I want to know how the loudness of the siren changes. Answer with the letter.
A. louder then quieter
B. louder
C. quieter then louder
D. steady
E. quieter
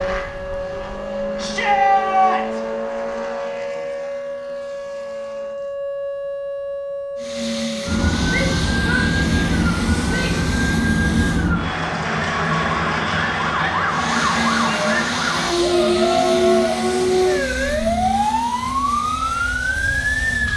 B.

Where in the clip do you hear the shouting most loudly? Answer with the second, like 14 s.
2 s.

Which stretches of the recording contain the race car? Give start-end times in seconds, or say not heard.
0.0-5.8, 7.2-11.6, 13.8-20.5.